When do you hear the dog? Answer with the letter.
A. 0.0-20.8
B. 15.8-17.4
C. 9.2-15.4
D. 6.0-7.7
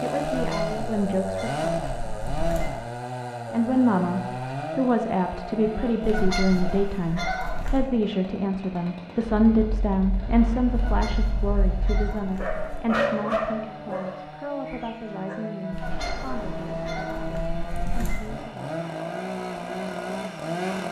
C.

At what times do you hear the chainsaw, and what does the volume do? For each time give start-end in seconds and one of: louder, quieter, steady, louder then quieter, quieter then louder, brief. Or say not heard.
0.0-20.8 quieter then louder.